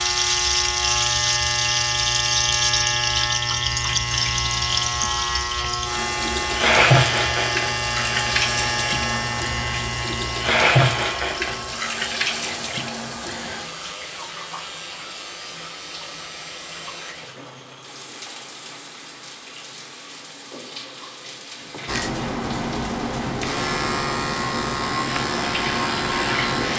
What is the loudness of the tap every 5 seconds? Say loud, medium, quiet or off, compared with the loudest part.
loud, loud, loud, quiet, quiet, medium.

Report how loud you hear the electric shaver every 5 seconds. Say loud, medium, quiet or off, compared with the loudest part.
loud, loud, medium, quiet, loud, loud.